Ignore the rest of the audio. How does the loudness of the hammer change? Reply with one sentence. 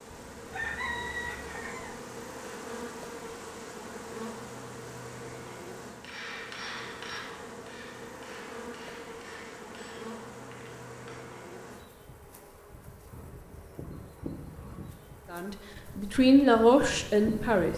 The loudness of the hammer goes down.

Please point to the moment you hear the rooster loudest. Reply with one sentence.
The volume of the rooster peaks at 1 second.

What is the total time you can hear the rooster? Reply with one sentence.
The rooster can be heard for 2 seconds in total.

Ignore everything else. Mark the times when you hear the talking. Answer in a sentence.
The talking can be heard from 15.3 to 17.7 s.